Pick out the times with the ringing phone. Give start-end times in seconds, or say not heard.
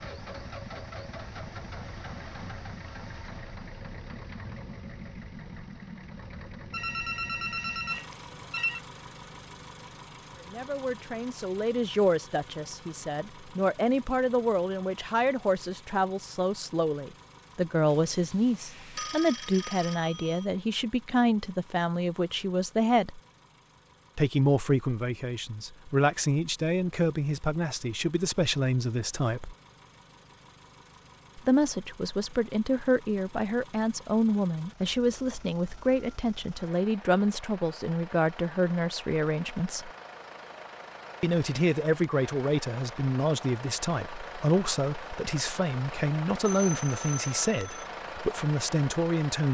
6.7-8.8, 17.9-20.4, 46.5-47.9.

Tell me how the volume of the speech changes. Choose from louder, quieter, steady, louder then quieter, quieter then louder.
steady.